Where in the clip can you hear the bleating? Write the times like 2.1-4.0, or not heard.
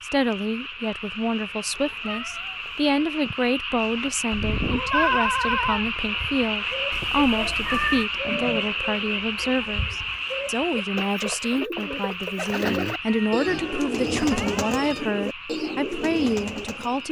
4.3-6.1.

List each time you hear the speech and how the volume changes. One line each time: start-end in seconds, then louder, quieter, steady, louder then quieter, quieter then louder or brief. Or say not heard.
0.0-17.0 steady.